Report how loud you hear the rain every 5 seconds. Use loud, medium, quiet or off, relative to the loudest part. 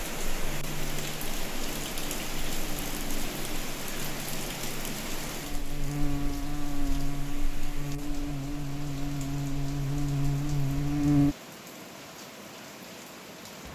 loud, medium, medium.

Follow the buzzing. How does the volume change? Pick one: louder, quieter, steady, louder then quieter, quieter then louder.
louder.